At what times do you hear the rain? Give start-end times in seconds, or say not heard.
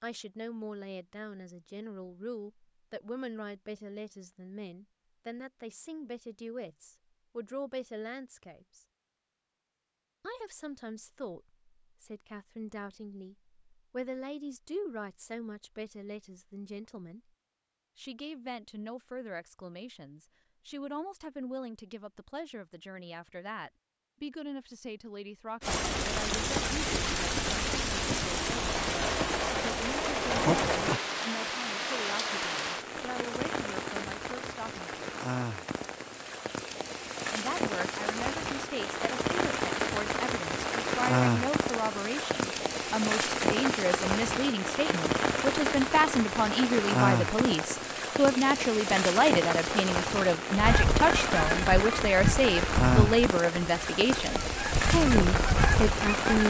25.6-56.4.